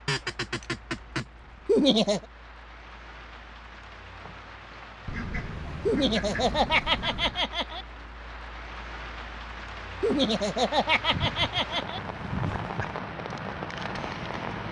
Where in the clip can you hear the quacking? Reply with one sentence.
You can hear the quacking from 0.1 to 1.2 s, from 5.0 to 7.5 s and from 11.1 to 12.9 s.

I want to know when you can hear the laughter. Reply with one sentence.
The laughter can be heard from 1.6 to 2.2 s, from 5.8 to 7.8 s and from 10.0 to 12.0 s.